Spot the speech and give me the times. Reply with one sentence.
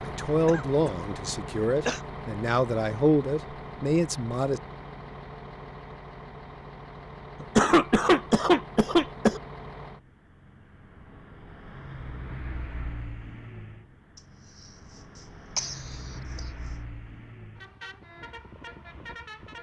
You can hear the speech from 0.0 to 4.6 s.